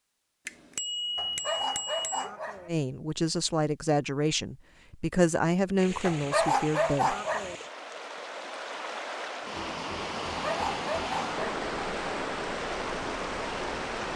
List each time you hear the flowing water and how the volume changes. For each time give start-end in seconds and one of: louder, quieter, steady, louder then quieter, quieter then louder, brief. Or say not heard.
5.8-14.1 louder.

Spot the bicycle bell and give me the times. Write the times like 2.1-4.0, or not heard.
0.5-2.3.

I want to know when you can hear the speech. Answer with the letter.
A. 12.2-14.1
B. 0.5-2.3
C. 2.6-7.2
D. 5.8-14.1
C.